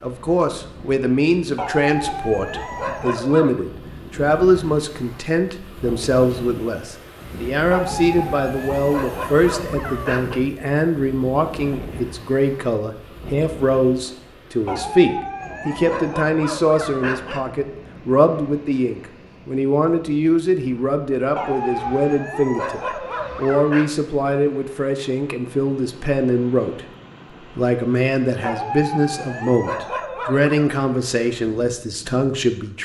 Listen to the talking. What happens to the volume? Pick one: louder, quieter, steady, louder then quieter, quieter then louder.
steady.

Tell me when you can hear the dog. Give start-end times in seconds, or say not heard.
1.6-3.6, 7.7-10.4, 14.7-17.4, 21.4-23.9, 28.4-30.7.